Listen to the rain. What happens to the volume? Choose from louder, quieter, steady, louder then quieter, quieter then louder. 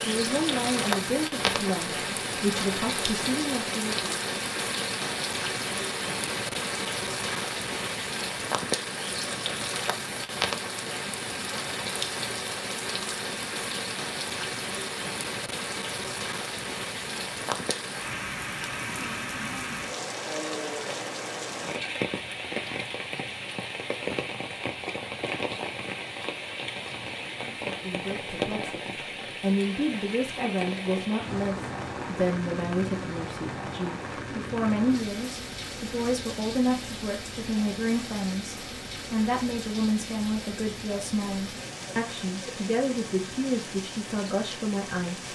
quieter.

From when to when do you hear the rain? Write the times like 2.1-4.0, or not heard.
0.0-45.3.